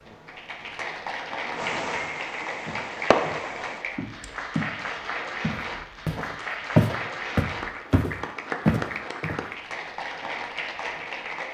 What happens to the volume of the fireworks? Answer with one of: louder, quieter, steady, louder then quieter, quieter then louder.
louder.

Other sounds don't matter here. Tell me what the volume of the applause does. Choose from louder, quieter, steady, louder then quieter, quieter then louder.
steady.